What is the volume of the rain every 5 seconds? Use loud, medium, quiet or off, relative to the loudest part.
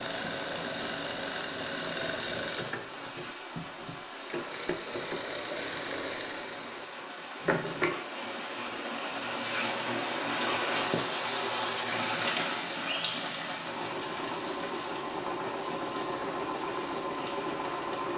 medium, medium, loud, medium.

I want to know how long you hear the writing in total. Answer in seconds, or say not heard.
not heard.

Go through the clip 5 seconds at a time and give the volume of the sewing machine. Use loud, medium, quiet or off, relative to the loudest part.
loud, loud, medium, loud.